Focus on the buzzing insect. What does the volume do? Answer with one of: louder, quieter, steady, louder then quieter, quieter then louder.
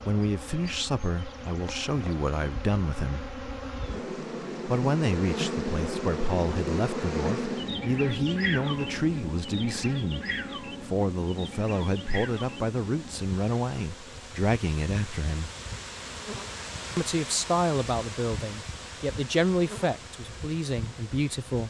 louder then quieter.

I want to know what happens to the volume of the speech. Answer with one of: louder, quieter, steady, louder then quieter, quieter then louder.
steady.